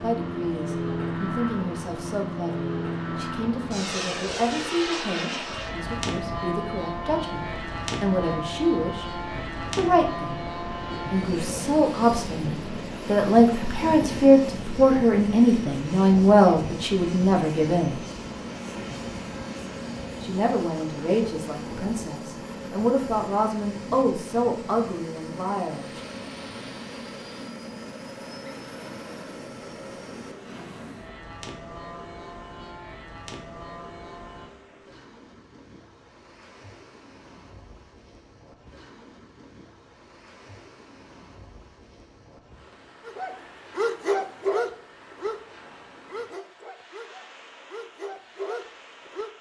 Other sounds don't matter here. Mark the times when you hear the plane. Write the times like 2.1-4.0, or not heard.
0.0-34.5.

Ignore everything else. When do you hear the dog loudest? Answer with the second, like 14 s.
44 s.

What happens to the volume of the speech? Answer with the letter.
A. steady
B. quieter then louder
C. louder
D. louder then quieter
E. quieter
D.